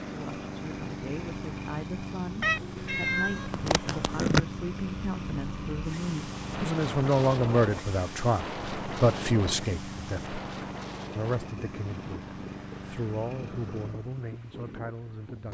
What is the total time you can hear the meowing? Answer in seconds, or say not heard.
2 s.